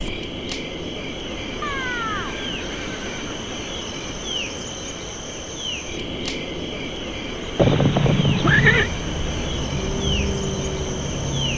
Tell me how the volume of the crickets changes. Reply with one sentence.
The volume of the crickets stays about the same.